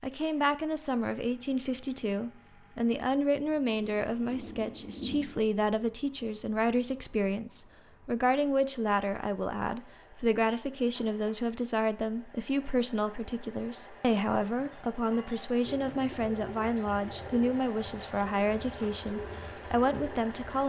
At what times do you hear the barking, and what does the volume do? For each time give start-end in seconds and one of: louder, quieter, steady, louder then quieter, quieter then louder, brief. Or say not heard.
not heard.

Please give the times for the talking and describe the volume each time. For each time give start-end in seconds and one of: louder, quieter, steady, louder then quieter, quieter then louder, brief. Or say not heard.
0.0-20.6 steady.